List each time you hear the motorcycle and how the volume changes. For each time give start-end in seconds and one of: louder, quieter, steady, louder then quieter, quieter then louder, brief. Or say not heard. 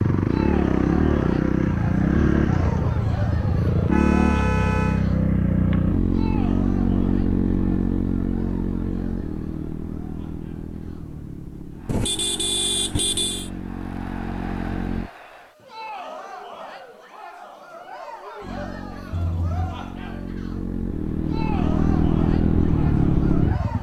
0.0-15.1 quieter
18.4-23.7 louder.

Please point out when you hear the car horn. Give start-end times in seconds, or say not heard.
3.9-5.0, 11.8-13.5, 19.1-19.9.